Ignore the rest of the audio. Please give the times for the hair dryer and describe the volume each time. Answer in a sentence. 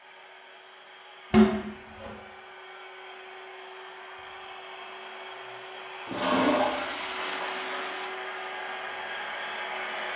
You can hear the hair dryer from 0.0 to 10.1 s, getting louder.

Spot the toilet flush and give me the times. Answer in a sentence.
The toilet flush can be heard from 1.3 to 2.1 s and from 6.0 to 8.1 s.